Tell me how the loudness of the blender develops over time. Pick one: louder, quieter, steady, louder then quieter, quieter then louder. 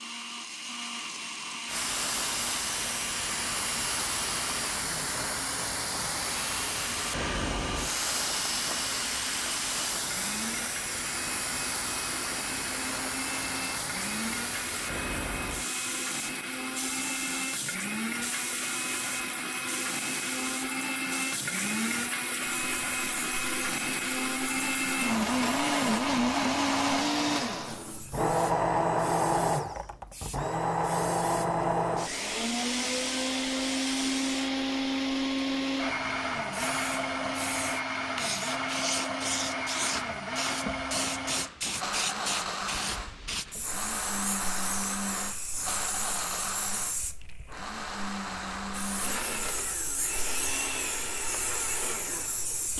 louder then quieter.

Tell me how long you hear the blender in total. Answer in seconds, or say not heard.
53 s.